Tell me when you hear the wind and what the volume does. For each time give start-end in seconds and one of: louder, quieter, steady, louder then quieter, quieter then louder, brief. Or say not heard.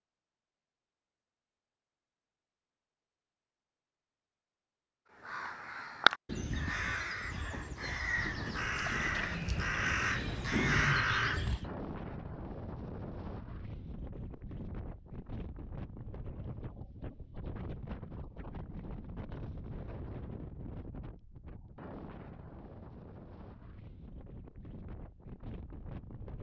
8.2-26.3 quieter.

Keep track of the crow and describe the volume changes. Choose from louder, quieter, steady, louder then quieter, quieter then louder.
quieter then louder.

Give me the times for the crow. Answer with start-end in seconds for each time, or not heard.
5.2-11.7.